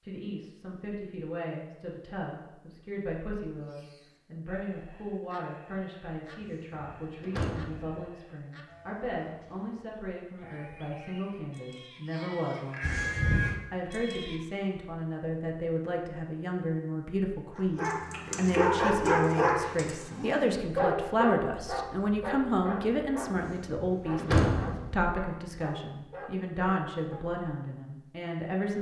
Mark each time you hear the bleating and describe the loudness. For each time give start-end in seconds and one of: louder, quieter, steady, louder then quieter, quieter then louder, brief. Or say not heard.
3.6-14.4 louder.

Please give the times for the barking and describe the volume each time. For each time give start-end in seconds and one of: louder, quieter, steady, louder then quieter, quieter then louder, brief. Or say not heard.
17.6-27.2 quieter.